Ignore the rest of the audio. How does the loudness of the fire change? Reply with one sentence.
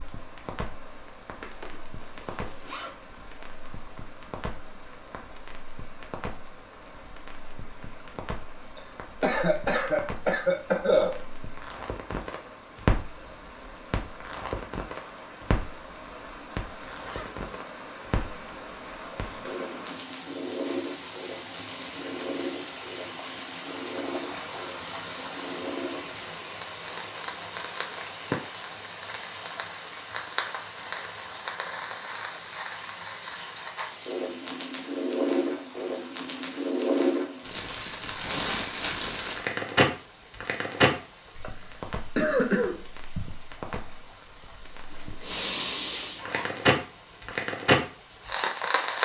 The volume of the fire goes up.